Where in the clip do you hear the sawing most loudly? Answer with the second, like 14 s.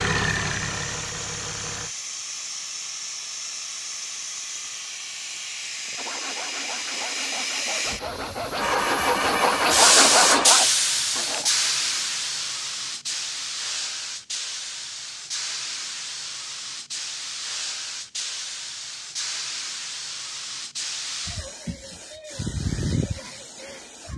10 s.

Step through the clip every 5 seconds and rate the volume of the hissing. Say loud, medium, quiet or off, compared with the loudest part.
medium, loud, loud, medium, medium.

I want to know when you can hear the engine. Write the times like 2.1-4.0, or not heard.
0.0-1.9, 8.6-10.6.